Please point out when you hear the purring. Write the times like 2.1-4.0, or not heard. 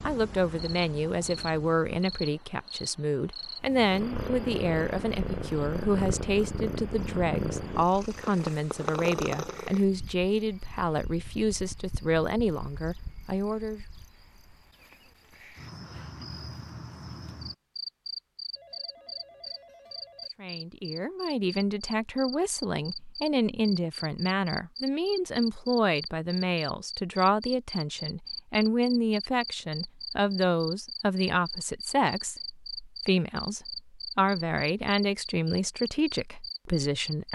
3.6-9.8.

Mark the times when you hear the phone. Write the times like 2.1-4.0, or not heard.
18.5-20.3.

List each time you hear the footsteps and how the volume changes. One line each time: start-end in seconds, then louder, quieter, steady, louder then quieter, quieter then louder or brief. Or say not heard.
not heard.